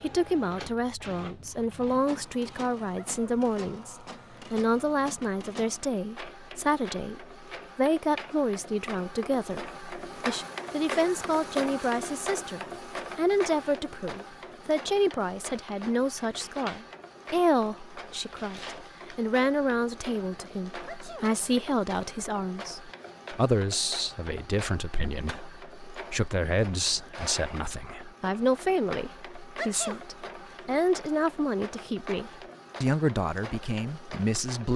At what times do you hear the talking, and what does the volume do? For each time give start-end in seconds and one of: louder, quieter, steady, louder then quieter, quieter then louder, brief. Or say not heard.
0.0-34.7 steady.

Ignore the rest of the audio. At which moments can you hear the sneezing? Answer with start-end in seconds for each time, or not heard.
3.0-3.4, 20.9-21.3, 29.6-30.1.